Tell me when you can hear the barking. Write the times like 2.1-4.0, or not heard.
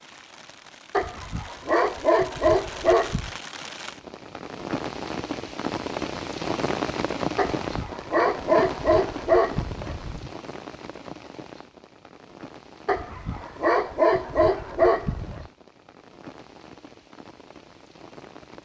0.9-3.3, 7.3-10.3, 12.8-15.4.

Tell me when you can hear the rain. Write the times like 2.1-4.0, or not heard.
0.0-18.6.